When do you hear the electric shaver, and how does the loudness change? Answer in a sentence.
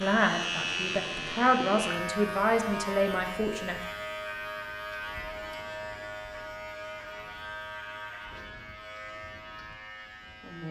You can hear the electric shaver from 0.0 to 10.6 s, getting quieter.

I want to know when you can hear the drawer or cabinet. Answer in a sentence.
You can't hear the drawer or cabinet here.